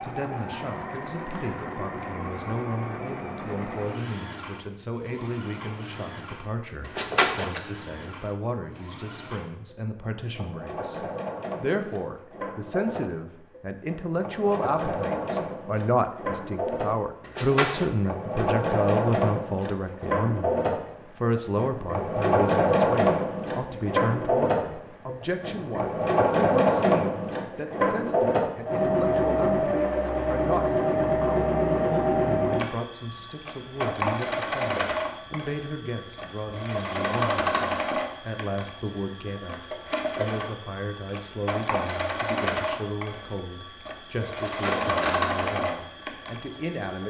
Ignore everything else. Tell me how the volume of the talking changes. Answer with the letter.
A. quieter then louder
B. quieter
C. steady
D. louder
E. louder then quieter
E.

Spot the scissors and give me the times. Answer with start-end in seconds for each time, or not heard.
6.8-7.6, 17.2-17.9, 44.5-45.1.